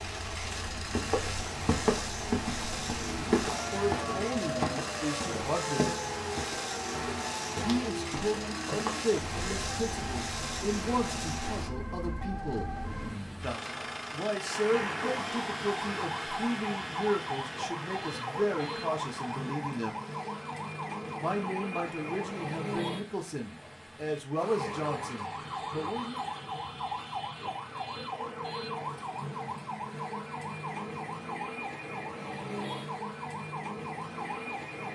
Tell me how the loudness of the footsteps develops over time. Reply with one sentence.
The loudness of the footsteps goes down.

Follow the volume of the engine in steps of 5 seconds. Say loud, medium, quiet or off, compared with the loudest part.
loud, loud, loud, loud, quiet, quiet, quiet.